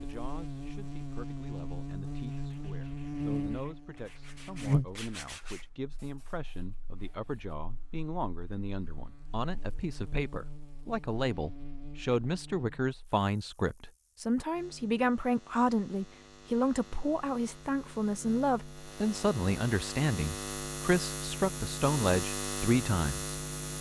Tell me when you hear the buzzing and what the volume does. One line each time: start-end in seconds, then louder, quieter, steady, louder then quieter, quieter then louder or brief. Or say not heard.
0.0-23.7 quieter then louder.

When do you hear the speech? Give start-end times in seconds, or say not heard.
0.0-23.3.